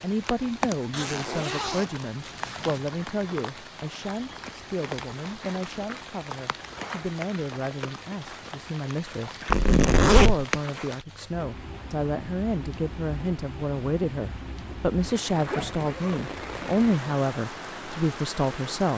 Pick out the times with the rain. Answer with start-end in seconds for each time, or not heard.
0.0-18.9.